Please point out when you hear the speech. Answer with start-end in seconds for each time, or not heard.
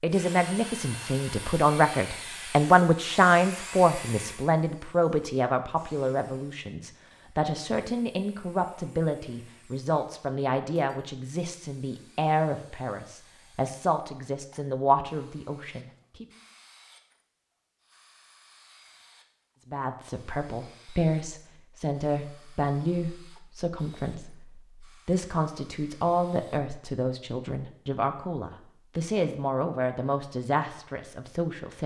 0.0-16.2, 19.6-31.8.